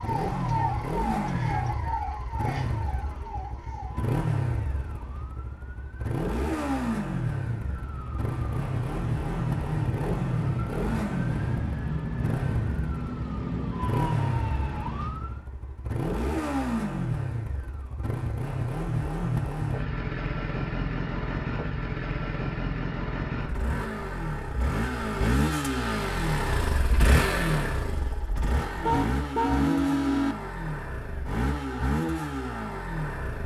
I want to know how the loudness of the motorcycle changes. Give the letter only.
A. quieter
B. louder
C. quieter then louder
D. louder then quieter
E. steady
E.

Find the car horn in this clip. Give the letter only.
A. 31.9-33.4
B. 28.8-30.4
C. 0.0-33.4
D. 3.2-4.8
B.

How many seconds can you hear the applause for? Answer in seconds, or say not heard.
not heard.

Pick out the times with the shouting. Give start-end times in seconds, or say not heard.
not heard.